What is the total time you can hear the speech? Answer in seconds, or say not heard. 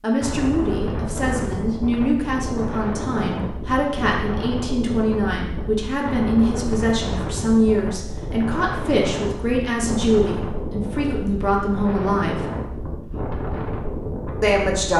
13 s.